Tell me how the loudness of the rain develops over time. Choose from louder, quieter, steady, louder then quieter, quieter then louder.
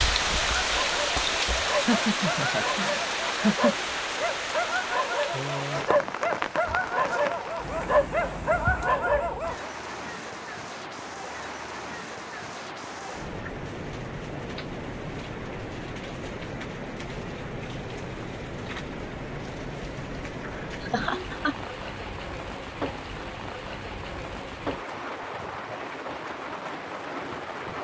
quieter.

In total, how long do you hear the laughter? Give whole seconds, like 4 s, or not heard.
3 s.